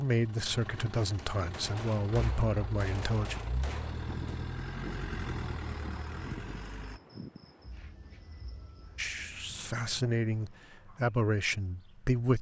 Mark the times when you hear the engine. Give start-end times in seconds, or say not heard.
0.0-7.0.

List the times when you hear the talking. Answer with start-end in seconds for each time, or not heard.
0.0-3.4, 8.9-12.3.